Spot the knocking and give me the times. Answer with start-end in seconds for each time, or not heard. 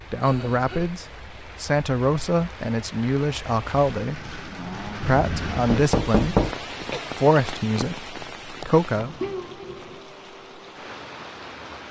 5.0-6.5.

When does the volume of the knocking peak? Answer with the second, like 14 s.
6 s.